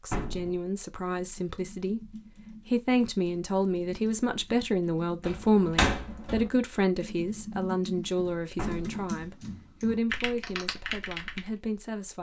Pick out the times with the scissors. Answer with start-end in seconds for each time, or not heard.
not heard.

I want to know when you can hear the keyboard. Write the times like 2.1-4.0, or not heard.
0.9-11.6.